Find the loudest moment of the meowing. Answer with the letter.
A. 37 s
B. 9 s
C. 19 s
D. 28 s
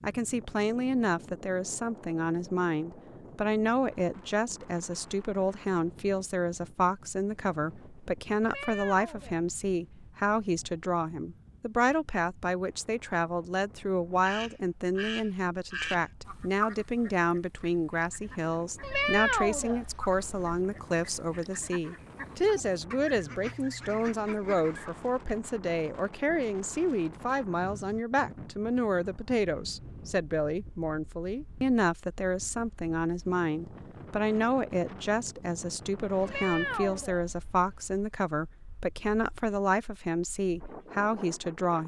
C.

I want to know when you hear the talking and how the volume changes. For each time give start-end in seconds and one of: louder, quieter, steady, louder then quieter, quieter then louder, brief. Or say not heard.
0.0-41.8 steady.